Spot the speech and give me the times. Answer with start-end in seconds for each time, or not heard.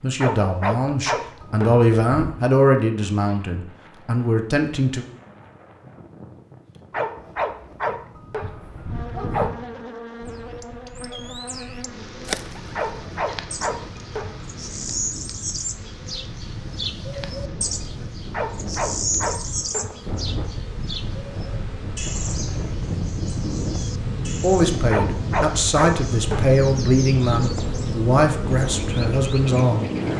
0.0-5.0, 24.4-29.9.